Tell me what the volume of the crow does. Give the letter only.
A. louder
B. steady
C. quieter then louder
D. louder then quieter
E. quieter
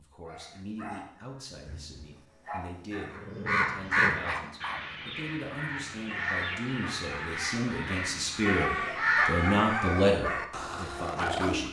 C.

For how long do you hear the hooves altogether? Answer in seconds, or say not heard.
not heard.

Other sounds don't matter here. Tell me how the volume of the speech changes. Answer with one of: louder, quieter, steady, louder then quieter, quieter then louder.
louder.